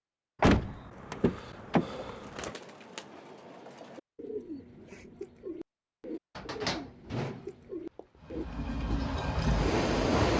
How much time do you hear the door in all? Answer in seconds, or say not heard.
4 s.